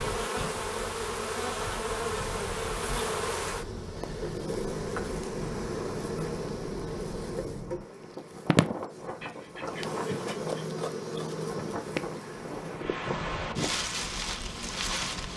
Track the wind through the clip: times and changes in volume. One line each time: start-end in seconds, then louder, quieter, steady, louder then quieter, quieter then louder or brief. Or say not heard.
0.0-15.3 louder.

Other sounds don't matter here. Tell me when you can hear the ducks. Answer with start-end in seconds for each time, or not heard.
9.2-10.5.